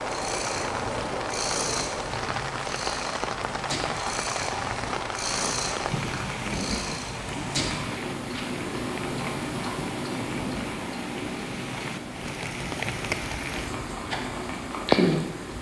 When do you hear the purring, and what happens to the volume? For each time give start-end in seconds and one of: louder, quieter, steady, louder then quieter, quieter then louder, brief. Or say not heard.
0.0-15.5 steady.